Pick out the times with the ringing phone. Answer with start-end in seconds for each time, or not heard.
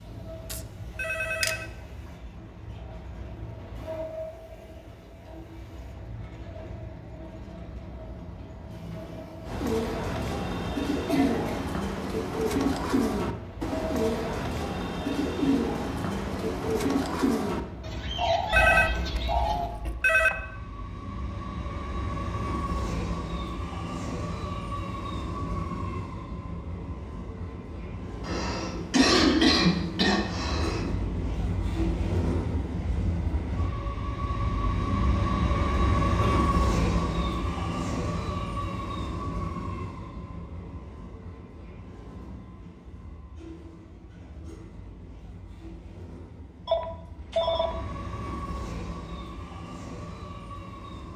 0.5-1.6, 18.5-20.4, 46.6-47.8.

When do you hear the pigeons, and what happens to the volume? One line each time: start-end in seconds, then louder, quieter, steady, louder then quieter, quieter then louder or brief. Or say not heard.
9.4-19.9 steady.